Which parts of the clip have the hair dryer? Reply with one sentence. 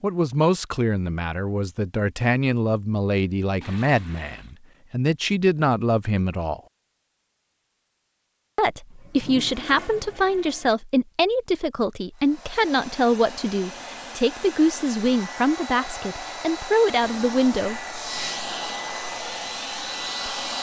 The hair dryer can be heard from 12.2 to 20.5 s.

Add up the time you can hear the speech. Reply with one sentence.
The speech can be heard for 16 seconds in total.